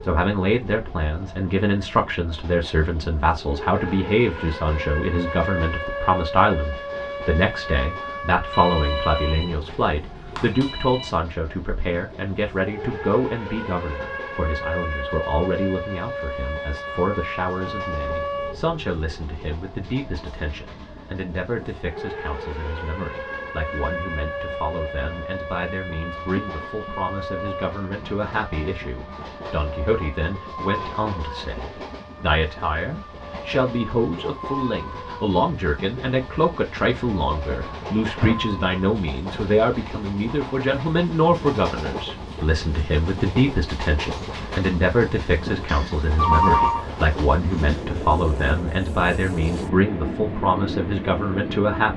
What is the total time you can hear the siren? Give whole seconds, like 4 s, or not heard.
39 s.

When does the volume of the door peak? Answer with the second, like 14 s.
38 s.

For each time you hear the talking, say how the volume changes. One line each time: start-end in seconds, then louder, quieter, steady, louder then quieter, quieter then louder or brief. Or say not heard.
0.0-51.9 quieter then louder.